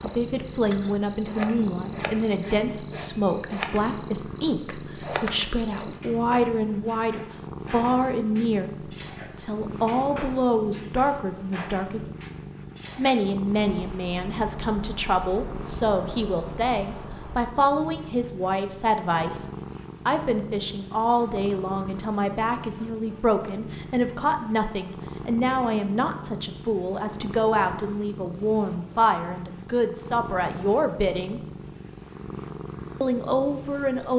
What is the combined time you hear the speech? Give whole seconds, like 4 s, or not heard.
31 s.